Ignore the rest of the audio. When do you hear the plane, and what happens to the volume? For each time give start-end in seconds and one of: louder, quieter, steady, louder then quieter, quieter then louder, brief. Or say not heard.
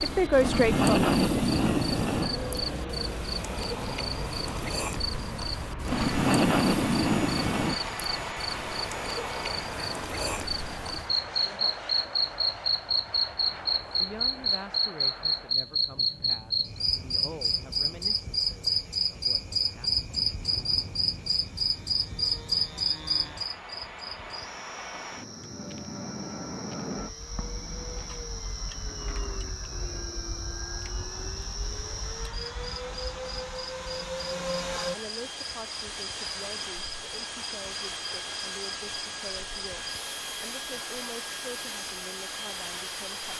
0.0-43.3 quieter then louder.